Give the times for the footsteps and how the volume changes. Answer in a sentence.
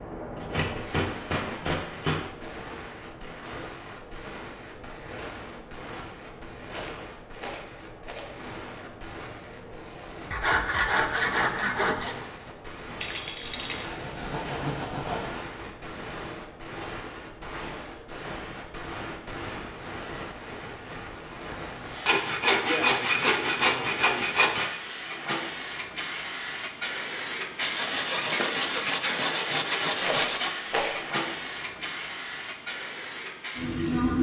The footsteps can't be heard in this clip.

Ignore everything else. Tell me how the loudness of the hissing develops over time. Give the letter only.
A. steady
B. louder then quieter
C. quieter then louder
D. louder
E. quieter
D.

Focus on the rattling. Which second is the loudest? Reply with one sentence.
The loudest moment of the rattling is at 31 seconds.